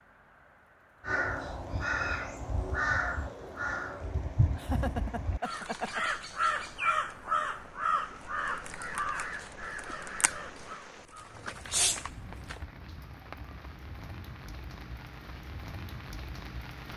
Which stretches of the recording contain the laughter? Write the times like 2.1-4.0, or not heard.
4.5-6.0.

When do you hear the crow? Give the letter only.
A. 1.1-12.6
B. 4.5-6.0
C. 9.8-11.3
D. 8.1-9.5
A.